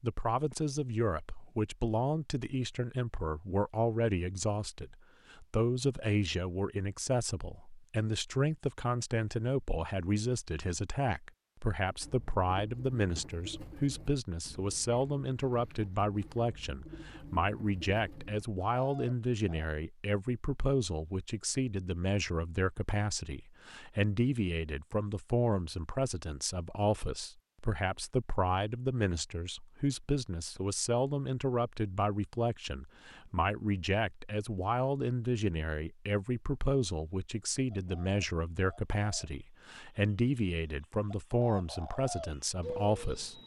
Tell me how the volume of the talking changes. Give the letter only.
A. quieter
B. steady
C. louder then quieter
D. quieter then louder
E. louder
B.